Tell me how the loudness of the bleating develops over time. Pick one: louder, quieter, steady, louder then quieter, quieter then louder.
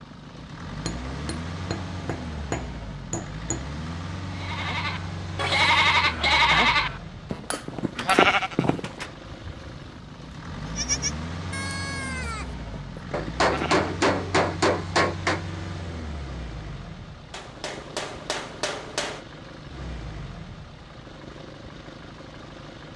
quieter.